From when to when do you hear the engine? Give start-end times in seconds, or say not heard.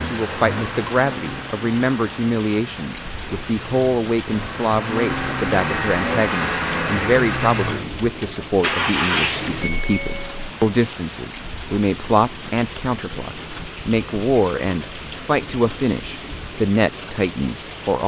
0.0-10.5.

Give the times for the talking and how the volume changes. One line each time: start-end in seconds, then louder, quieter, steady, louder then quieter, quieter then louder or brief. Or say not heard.
0.1-18.0 steady.